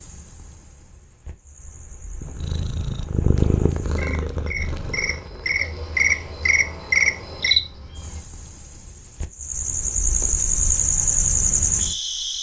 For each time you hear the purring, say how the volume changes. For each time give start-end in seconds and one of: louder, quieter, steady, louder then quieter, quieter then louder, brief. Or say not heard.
2.2-8.2 quieter.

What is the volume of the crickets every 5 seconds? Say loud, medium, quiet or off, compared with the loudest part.
quiet, loud, loud.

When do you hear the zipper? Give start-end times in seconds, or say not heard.
not heard.